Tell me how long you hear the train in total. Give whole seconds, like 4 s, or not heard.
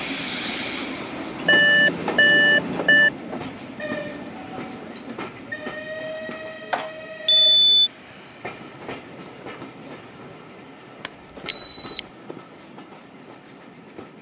14 s.